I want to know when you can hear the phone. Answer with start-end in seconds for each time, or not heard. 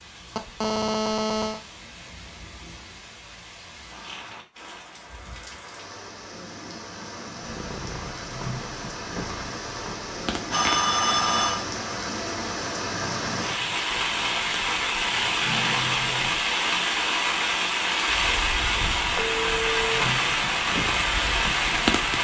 0.3-1.6, 10.5-11.7, 19.1-19.9.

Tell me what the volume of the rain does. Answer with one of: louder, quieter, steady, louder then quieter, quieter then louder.
louder.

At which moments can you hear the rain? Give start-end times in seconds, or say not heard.
0.0-22.1.